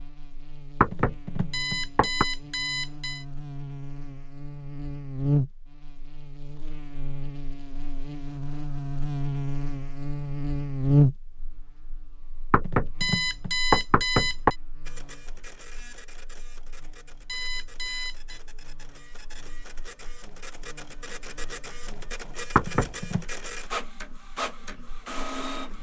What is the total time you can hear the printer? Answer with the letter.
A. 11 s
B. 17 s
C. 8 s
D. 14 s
A.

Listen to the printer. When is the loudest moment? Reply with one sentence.
The loudest moment of the printer is at 24 seconds.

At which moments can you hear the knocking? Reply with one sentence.
You can hear the knocking from 0.8 to 2.2 s, from 12.5 to 14.5 s and from 22.6 to 23.2 s.